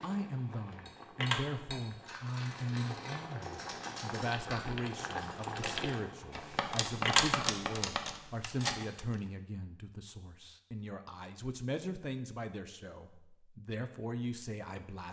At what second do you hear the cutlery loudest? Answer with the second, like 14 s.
7 s.